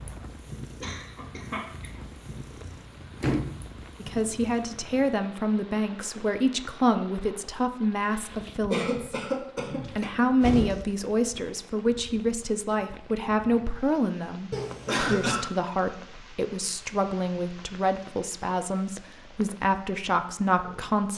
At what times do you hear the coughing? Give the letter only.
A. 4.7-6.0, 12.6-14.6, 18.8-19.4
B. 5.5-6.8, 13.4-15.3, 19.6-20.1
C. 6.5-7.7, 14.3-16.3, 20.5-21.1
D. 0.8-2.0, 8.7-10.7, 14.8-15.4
D.